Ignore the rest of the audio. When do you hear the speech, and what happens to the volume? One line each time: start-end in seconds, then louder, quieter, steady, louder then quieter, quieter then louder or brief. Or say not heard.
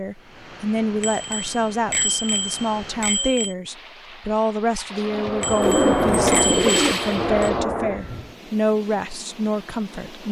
0.0-10.2 steady.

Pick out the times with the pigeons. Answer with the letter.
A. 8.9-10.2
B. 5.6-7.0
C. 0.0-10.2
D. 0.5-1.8
B.